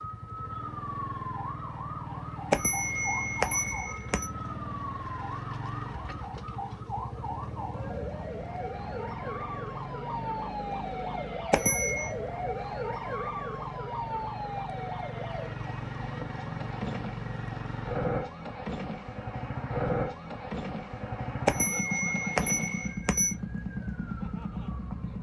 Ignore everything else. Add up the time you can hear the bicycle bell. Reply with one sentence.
You can hear the bicycle bell for 4 seconds altogether.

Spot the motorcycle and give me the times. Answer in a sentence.
The motorcycle can be heard from 0.0 to 25.1 s.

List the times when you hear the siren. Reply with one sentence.
You can hear the siren from 0.0 to 25.1 s.